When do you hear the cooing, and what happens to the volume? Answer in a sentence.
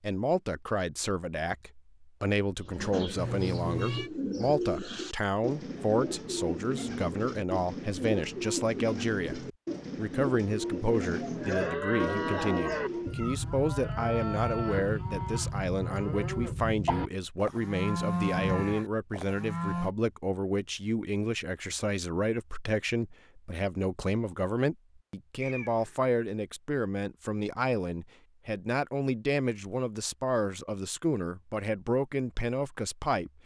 You can hear the cooing from 2.6 to 13.2 s, at a steady volume.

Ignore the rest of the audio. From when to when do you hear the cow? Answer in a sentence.
You can hear the cow from 11.1 to 19.9 s.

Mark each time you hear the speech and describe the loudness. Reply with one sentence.
You can hear the speech from 0.0 to 33.3 s, at a steady volume.